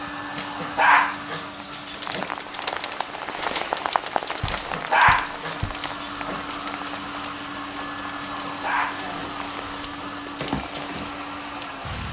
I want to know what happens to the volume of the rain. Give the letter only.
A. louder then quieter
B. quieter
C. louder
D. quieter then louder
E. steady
B.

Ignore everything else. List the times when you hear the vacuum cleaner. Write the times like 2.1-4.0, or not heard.
0.0-12.0.